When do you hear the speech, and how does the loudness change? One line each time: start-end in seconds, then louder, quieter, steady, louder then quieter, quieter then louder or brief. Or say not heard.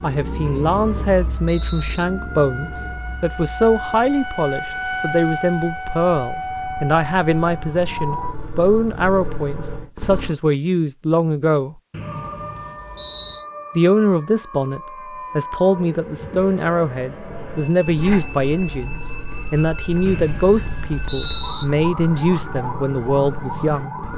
0.0-11.8 steady
13.8-23.9 steady.